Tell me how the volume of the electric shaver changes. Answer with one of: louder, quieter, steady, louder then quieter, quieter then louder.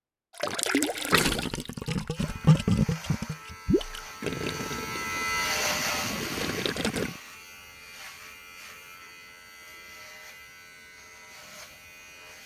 louder then quieter.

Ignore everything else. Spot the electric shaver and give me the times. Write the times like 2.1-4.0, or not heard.
2.1-12.4.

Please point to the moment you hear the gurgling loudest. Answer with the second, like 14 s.
3 s.